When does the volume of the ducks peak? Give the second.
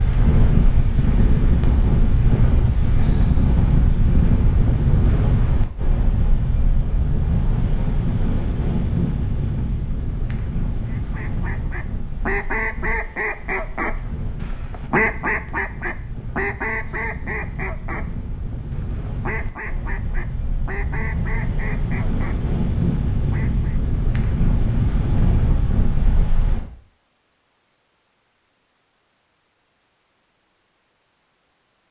15 s.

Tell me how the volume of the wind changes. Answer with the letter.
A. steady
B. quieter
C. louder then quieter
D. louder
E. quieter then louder
E.